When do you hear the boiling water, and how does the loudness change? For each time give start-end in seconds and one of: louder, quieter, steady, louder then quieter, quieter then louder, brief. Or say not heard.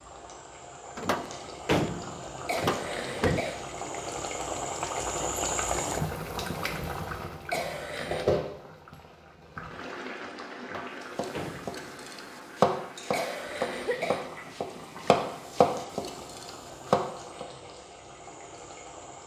0.0-19.2 louder then quieter.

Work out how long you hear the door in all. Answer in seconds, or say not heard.
4 s.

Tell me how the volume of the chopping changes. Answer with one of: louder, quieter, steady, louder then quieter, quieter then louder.
quieter then louder.